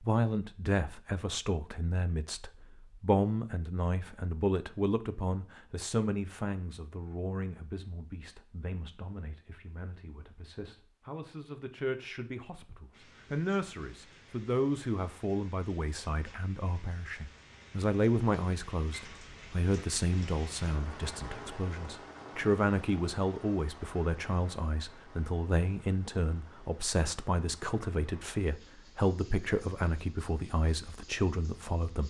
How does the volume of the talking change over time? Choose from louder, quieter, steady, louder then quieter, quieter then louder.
quieter then louder.